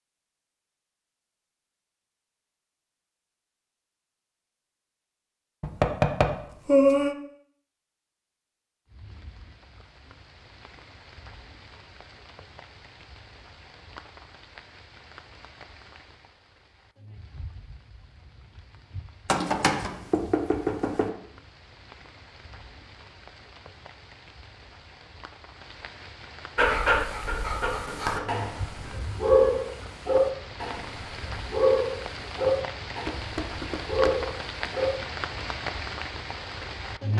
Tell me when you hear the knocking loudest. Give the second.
7 s.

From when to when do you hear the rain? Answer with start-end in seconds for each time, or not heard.
8.8-37.1.